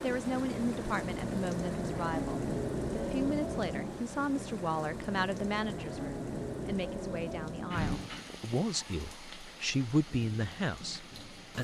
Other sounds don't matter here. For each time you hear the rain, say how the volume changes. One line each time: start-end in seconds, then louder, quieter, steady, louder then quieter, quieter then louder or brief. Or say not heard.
0.0-11.5 quieter.